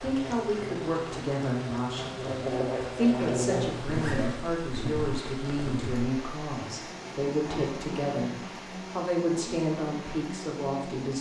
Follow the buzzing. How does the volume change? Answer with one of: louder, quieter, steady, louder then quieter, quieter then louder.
louder then quieter.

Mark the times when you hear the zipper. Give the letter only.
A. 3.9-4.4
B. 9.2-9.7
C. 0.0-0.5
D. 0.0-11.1
A.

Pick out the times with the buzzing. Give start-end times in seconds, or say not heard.
0.0-11.1.